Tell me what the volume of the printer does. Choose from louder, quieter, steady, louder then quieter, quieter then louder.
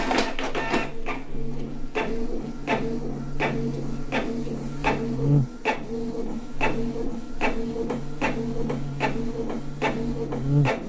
steady.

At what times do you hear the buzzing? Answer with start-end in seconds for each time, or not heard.
0.2-10.8.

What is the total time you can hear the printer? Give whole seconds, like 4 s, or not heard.
11 s.